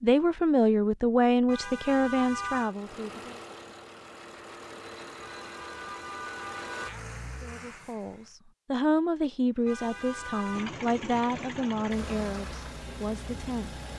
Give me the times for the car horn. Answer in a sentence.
You can hear the car horn from 1.4 to 2.8 s, from 5.2 to 7.0 s and from 9.7 to 10.7 s.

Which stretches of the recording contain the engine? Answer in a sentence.
The engine can be heard from 2.6 to 8.3 s and from 9.5 to 13.9 s.